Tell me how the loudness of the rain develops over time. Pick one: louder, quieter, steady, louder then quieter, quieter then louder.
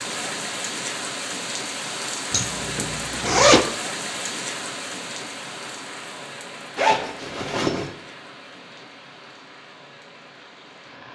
quieter.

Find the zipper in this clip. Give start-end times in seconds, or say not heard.
2.3-3.6, 6.8-7.9.